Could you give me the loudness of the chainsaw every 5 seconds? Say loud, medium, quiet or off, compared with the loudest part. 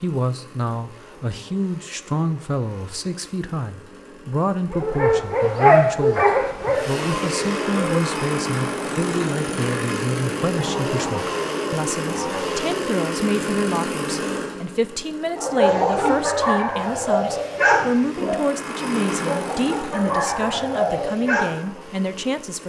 quiet, loud, loud, medium, quiet.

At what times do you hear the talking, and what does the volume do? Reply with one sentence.
The talking can be heard from 0.0 to 22.6 s, at a steady volume.